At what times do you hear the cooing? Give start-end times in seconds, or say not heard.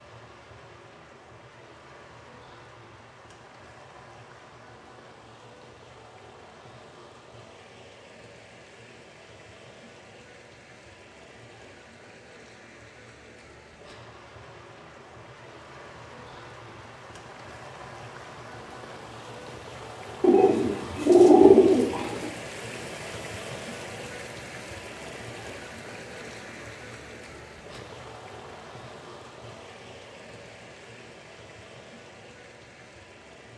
20.2-22.3.